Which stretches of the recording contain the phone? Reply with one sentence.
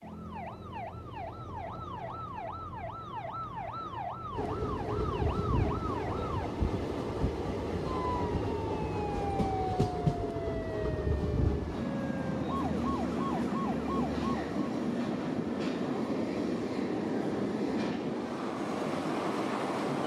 The phone can't be heard in this clip.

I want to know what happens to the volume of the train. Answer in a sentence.
The volume of the train stays about the same.